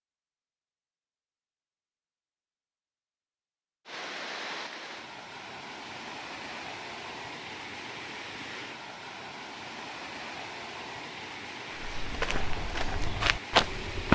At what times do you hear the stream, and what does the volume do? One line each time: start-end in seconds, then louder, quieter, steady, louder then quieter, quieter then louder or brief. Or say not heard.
3.9-14.1 steady.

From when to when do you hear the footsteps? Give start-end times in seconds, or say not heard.
11.7-14.1.